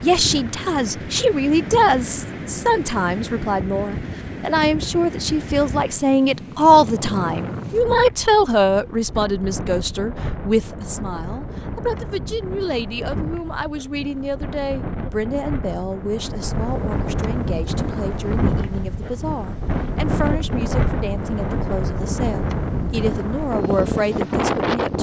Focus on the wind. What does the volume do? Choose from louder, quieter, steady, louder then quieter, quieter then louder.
louder.